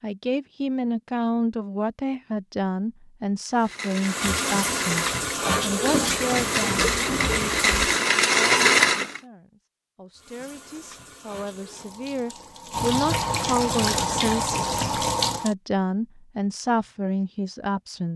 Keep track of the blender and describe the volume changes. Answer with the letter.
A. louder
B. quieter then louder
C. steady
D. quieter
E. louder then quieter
A.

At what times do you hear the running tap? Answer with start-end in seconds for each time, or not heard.
4.0-8.1, 10.2-15.6.